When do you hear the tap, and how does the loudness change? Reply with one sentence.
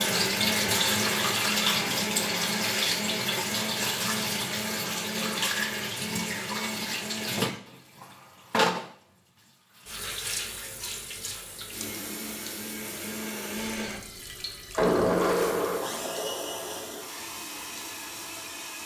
You can hear the tap from 0.0 to 18.8 s, getting quieter.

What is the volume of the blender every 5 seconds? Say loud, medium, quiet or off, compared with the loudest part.
loud, medium, loud, loud.